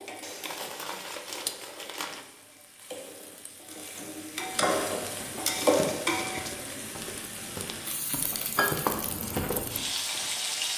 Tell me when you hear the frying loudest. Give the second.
6 s.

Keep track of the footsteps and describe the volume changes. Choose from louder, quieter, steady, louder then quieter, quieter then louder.
louder.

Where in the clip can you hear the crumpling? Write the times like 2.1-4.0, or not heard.
0.2-2.2, 5.7-6.5.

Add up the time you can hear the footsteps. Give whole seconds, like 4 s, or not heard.
6 s.